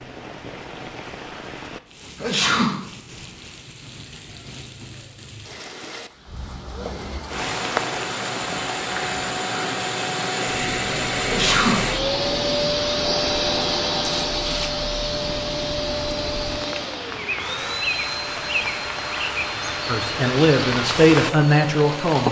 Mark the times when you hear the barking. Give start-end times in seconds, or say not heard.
not heard.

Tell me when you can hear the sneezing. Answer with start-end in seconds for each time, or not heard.
2.1-2.8, 11.2-11.8.